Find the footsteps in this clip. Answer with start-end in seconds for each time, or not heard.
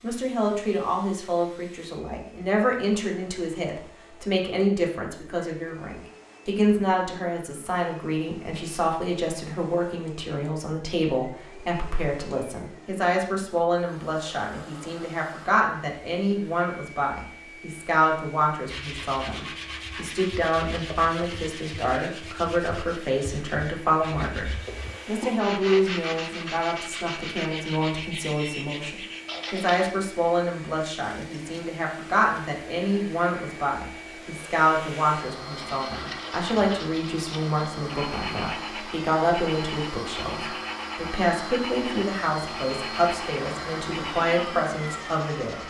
not heard.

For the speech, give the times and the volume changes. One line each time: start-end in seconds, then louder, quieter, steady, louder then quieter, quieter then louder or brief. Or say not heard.
0.0-45.6 steady.